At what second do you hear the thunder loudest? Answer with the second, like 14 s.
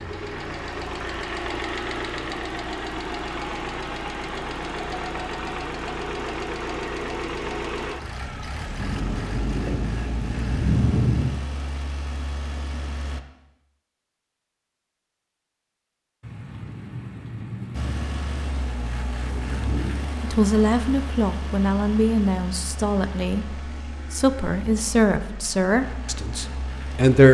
11 s.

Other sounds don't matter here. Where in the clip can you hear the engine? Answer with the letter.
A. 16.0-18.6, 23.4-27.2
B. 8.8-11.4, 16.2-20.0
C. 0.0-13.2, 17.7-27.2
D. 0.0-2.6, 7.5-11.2
C.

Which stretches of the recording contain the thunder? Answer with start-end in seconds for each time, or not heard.
8.8-11.4, 16.2-20.0.